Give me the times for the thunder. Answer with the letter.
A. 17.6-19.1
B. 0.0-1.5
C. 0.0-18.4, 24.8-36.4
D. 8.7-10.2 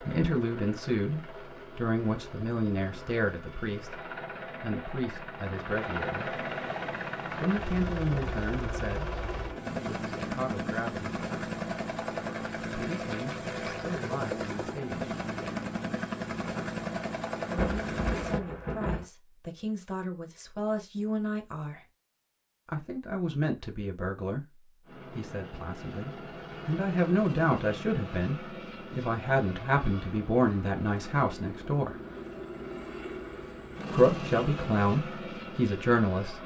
A.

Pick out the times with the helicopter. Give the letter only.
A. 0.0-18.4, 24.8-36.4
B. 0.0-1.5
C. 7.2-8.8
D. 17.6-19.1
A.